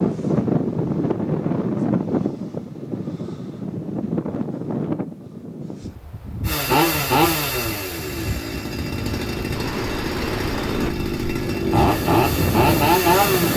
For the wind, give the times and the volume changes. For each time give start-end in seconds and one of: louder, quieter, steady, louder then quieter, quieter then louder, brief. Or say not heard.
0.0-13.5 quieter then louder.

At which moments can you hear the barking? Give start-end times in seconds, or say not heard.
not heard.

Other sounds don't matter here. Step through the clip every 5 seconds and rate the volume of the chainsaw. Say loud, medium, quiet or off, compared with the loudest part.
off, loud, loud.